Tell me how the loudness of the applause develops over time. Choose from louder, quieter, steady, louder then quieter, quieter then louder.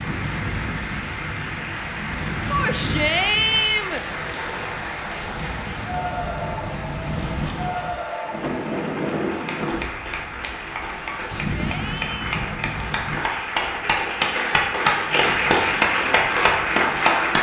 louder.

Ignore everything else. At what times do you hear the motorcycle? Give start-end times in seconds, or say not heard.
not heard.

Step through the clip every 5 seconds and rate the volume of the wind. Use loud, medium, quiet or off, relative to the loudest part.
loud, loud, loud, quiet.